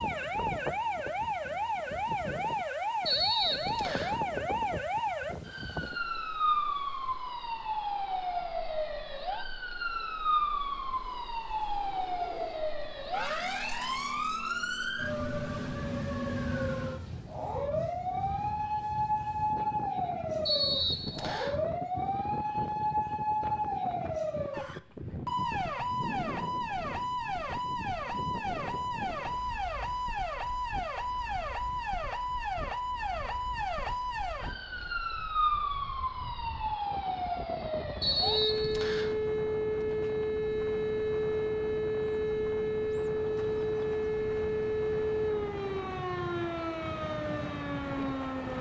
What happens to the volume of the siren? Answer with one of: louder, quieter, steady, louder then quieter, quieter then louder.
steady.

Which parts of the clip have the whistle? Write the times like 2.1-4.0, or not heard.
3.0-4.2, 20.4-21.6, 38.0-39.1.